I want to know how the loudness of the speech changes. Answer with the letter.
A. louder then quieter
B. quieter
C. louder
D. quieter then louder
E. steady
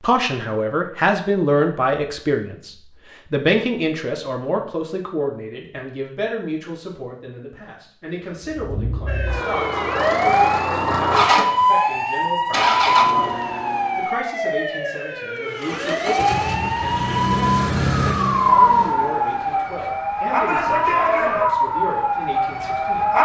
B.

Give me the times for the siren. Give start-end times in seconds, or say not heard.
9.1-23.2.